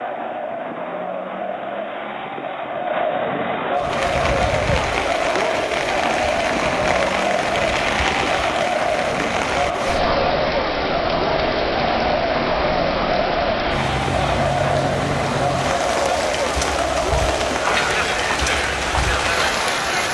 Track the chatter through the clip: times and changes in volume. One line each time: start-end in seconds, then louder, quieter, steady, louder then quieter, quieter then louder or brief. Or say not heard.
0.0-20.0 steady.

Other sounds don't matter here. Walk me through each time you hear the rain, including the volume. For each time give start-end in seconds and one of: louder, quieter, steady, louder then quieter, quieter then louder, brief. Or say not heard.
3.8-20.0 steady.